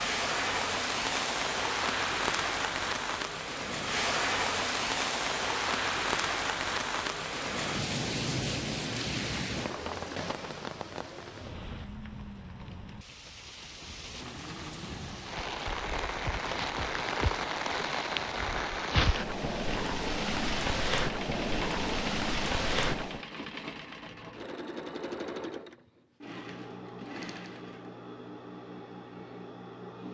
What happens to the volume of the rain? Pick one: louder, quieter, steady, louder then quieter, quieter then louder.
quieter then louder.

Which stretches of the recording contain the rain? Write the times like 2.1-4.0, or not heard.
0.0-23.2.